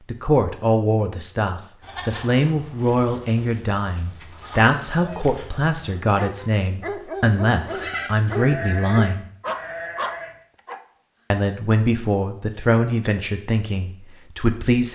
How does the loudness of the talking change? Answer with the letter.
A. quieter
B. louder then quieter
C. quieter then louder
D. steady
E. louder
D.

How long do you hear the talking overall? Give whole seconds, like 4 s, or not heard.
13 s.